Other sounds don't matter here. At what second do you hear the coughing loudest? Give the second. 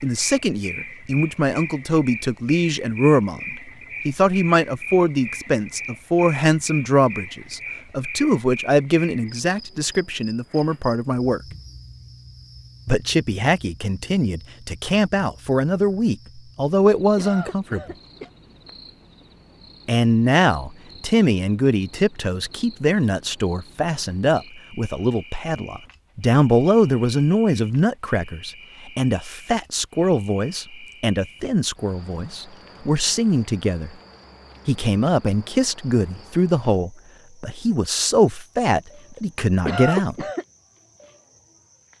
40 s.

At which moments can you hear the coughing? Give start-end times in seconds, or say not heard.
17.1-18.3, 39.5-40.5.